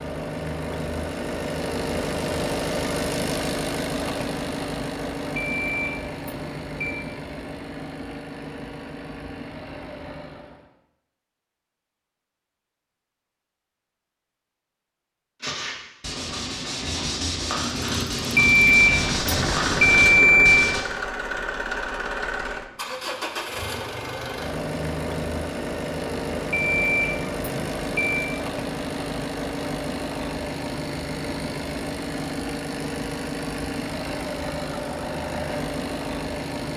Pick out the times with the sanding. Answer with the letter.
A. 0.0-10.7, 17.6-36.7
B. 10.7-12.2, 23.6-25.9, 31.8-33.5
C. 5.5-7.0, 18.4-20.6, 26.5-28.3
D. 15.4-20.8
D.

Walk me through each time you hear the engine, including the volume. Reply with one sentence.
The engine can be heard from 0.0 to 10.7 s, getting quieter; and from 17.6 to 36.7 s, at a steady volume.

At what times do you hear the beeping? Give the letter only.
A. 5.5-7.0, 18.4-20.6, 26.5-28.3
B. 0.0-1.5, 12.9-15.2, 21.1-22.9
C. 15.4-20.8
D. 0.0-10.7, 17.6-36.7
A.